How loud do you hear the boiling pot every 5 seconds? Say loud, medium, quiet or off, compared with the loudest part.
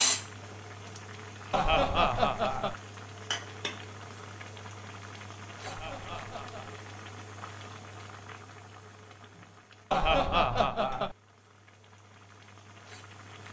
loud, medium, quiet.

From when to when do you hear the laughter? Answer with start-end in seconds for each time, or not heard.
1.5-2.8, 5.7-6.7, 9.9-11.2.